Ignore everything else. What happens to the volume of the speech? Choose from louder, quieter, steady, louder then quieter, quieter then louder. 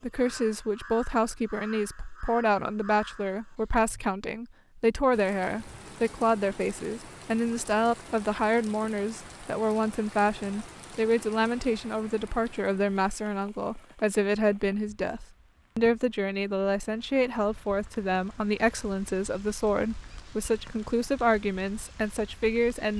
steady.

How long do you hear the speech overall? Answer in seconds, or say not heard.
23 s.